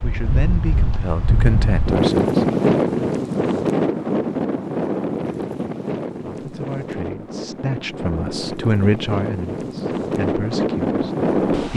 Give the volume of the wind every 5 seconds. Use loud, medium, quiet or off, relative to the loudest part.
loud, medium, loud.